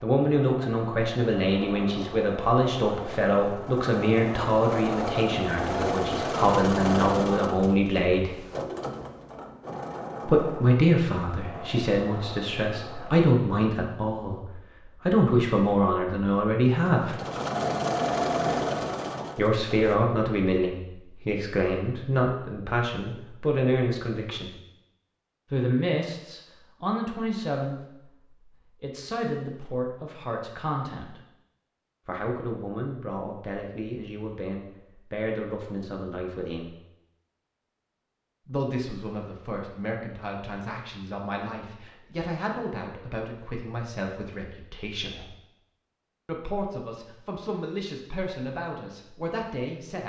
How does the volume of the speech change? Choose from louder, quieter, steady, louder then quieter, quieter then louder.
quieter.